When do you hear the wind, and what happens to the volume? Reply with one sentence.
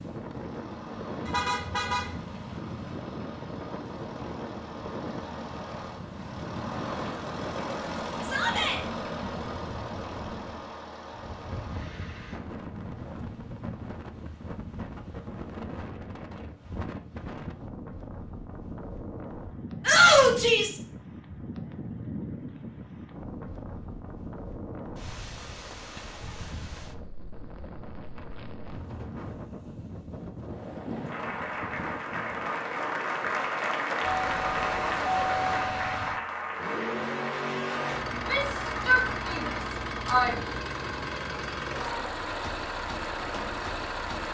You can hear the wind from 0.0 to 35.6 s, at a steady volume.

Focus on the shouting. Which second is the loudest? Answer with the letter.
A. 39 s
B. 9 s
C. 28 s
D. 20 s
D.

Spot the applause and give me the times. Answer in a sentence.
You can hear the applause from 31.1 to 39.4 s.